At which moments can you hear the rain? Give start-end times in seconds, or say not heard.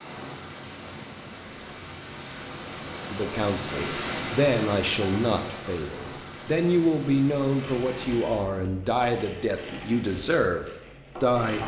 0.0-8.3.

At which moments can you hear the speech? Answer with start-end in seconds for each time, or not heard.
3.1-11.6.